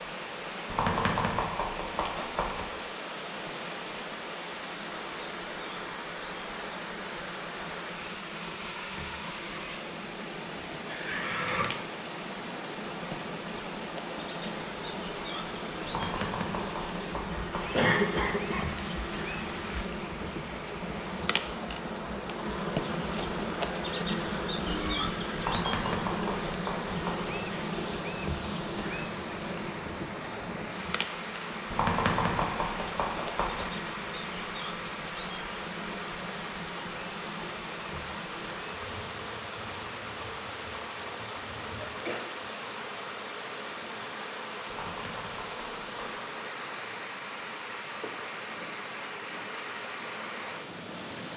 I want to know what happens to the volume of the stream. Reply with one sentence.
The volume of the stream stays about the same.